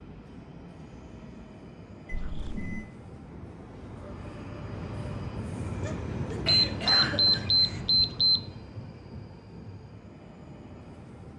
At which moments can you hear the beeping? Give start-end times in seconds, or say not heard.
2.0-2.9, 6.5-8.4.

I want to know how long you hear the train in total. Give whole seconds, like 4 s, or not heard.
11 s.